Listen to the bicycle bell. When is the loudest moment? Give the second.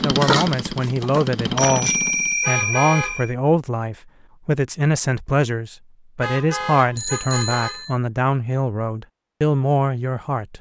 2 s.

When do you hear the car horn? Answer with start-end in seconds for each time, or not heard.
2.4-3.2, 6.2-7.8.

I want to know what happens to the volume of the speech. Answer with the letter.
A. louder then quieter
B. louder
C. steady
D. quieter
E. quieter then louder
C.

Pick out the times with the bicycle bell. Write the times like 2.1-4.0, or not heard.
1.6-3.3, 7.0-8.0.